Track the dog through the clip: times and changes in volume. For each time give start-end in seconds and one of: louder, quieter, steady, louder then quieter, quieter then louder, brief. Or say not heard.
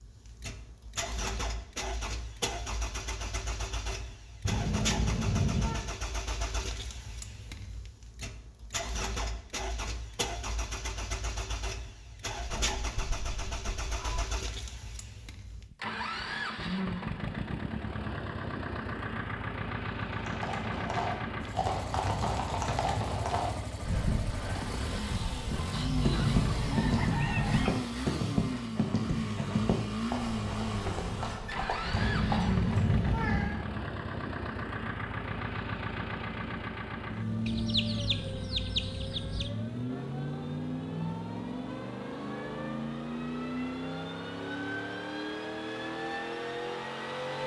not heard.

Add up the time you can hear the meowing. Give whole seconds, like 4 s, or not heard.
3 s.